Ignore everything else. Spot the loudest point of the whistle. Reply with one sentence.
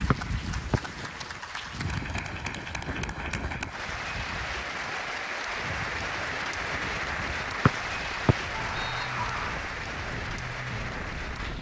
The volume of the whistle peaks at 8 seconds.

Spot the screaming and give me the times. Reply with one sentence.
The screaming can be heard from 8.5 to 9.7 s.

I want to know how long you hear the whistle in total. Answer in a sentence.
You can hear the whistle for 2 seconds altogether.